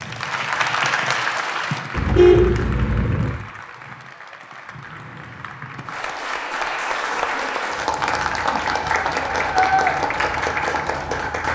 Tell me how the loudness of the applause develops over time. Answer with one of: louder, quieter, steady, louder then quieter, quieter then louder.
quieter then louder.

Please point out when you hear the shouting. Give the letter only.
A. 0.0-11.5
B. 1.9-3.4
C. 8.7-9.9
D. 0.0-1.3
C.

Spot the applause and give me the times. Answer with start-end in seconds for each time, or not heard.
0.0-11.5.